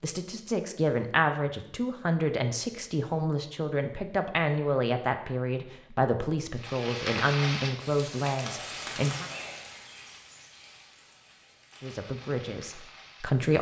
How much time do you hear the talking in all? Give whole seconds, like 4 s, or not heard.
11 s.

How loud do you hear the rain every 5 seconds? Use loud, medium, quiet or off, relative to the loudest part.
off, loud, quiet.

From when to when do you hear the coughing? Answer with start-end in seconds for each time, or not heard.
not heard.